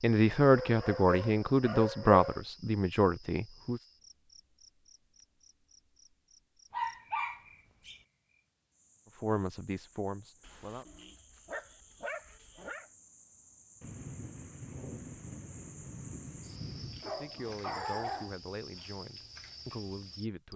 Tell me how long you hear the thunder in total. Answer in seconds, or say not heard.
3 s.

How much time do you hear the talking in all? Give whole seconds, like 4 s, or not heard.
9 s.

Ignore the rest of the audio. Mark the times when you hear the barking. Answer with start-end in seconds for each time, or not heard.
0.5-2.4, 6.7-8.0, 10.4-12.8, 17.0-18.9.